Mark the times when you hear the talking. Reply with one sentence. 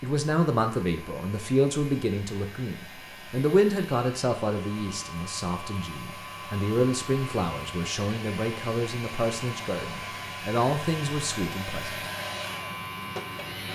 You can hear the talking from 0.0 to 11.9 s.